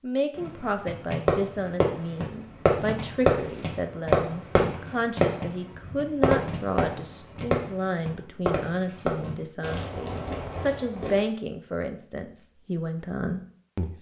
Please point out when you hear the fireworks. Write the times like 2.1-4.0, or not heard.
0.3-11.2.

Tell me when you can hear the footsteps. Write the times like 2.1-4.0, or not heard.
not heard.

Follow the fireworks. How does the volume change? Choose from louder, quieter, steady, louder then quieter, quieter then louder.
quieter.